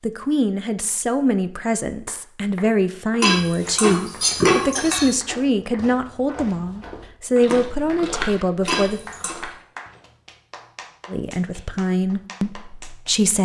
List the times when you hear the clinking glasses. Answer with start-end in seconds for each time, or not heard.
3.2-5.2, 8.7-9.3.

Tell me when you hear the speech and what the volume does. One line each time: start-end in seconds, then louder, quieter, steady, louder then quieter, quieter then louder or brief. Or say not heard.
0.0-9.0 steady
11.1-13.4 brief.